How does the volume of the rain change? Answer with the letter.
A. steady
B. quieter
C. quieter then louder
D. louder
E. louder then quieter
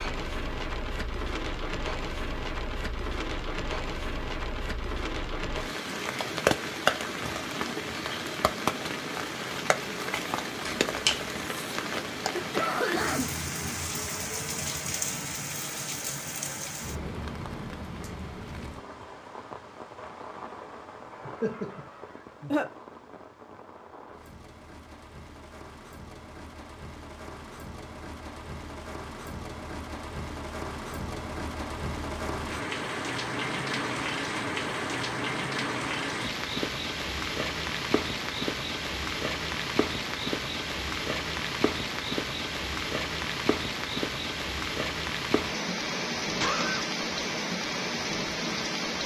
C.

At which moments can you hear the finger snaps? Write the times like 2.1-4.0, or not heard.
10.7-11.2.